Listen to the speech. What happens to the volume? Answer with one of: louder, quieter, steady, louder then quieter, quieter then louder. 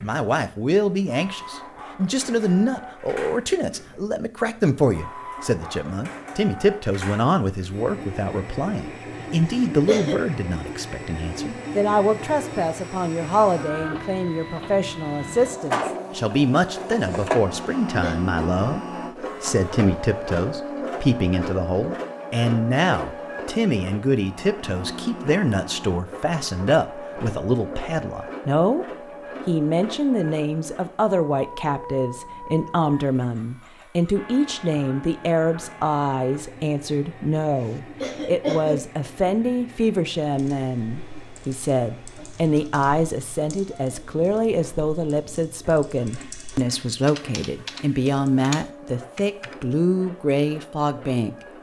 steady.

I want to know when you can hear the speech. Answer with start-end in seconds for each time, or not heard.
0.0-28.9, 29.4-51.4.